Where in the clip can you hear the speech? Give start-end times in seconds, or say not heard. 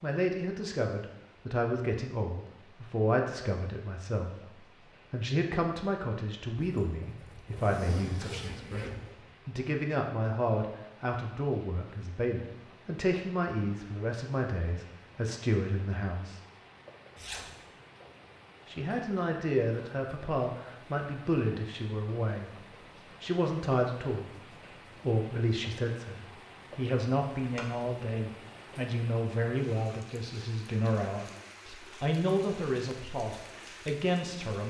0.0-16.4, 18.6-22.6, 23.2-34.6.